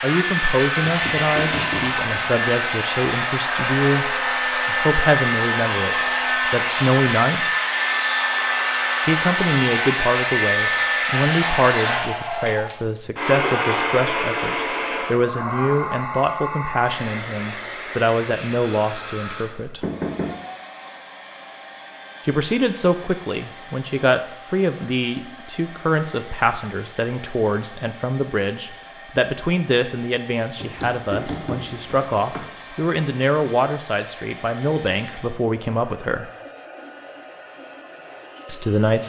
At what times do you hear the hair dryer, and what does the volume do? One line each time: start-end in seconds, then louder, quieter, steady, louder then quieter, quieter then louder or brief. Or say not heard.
0.0-39.0 quieter.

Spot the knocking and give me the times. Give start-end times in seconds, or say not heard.
0.8-2.5, 19.8-20.4, 30.6-32.5.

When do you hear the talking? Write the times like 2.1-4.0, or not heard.
0.0-7.5, 9.1-19.8, 22.2-36.2, 38.5-39.0.